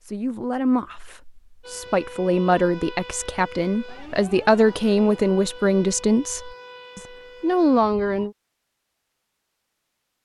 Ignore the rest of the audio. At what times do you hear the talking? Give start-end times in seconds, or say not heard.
0.1-8.3.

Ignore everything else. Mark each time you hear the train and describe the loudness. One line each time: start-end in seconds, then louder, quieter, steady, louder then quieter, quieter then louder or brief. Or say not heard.
not heard.